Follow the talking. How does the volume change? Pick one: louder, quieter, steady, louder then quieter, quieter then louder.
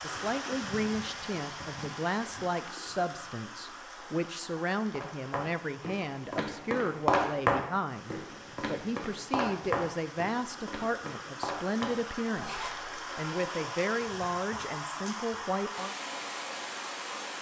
steady.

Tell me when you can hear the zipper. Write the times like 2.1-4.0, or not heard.
11.8-12.8.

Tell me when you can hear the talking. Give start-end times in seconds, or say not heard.
0.0-15.9.